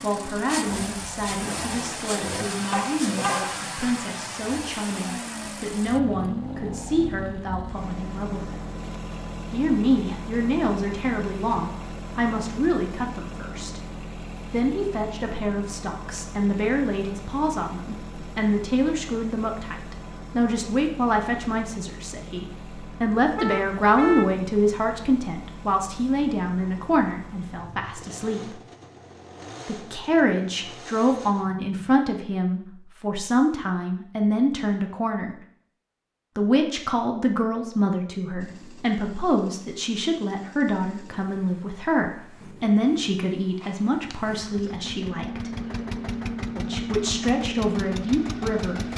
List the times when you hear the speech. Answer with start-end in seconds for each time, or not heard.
0.0-8.6, 9.5-13.8, 14.5-28.6, 29.6-35.4, 36.4-45.5, 46.5-48.9.